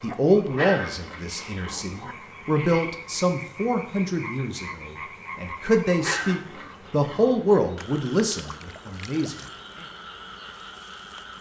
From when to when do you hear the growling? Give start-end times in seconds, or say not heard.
0.5-2.1, 6.0-7.5.